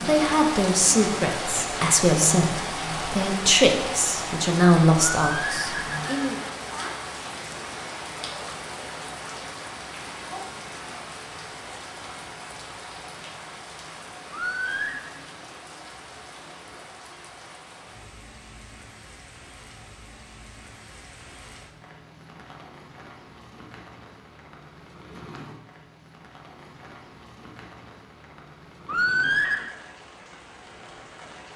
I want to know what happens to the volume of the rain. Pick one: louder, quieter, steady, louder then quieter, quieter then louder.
quieter.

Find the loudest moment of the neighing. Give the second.
29 s.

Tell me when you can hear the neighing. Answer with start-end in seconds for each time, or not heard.
5.2-6.2, 14.3-15.1, 28.9-29.8.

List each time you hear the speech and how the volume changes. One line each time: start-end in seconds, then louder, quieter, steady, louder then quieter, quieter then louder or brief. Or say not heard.
0.1-6.3 steady.